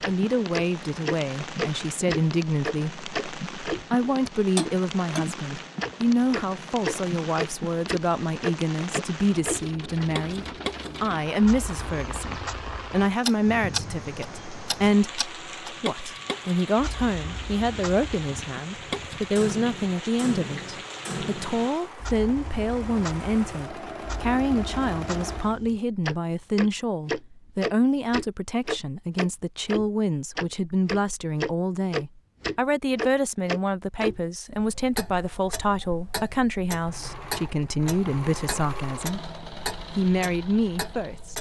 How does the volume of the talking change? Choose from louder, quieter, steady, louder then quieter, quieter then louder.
steady.